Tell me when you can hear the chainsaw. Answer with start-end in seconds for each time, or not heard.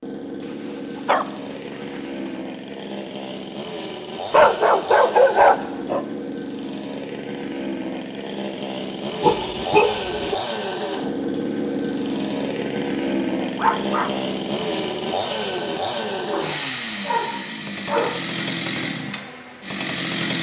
0.0-20.3.